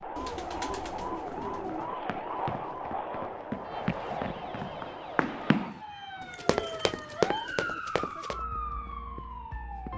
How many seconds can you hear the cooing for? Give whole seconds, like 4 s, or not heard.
3 s.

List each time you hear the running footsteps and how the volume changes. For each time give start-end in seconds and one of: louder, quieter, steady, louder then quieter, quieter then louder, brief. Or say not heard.
1.2-8.4 louder.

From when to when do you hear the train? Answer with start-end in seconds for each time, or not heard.
0.0-5.8.